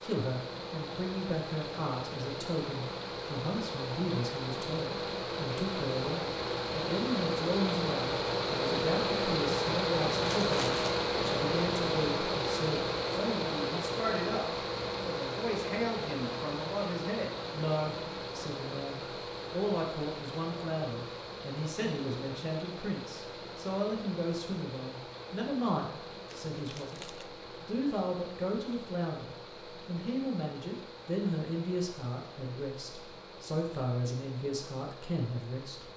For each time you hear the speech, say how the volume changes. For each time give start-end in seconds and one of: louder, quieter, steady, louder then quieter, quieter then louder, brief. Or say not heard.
0.0-35.9 steady.